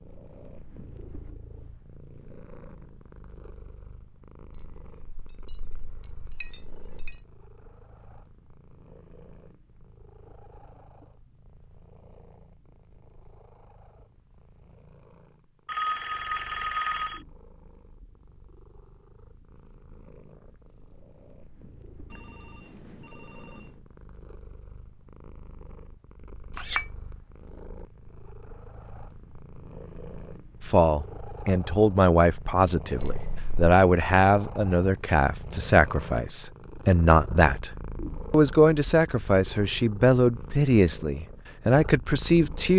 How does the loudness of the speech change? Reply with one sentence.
The loudness of the speech stays about the same.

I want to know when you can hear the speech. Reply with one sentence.
The speech can be heard from 30.6 to 42.7 s.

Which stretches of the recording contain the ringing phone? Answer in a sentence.
The ringing phone can be heard from 15.7 to 17.2 s and from 22.1 to 23.8 s.